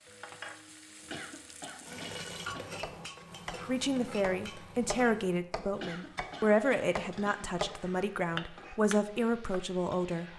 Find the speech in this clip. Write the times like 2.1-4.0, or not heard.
3.6-10.2.